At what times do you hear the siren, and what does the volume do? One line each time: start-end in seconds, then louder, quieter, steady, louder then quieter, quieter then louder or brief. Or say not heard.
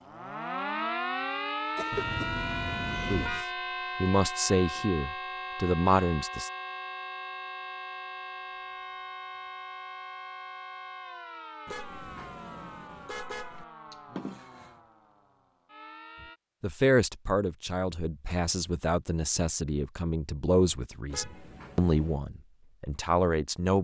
0.0-16.4 quieter.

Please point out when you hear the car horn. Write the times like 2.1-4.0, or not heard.
1.9-3.5, 11.7-13.7, 21.1-22.2.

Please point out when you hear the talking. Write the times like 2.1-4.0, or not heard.
3.0-6.5, 16.6-23.7.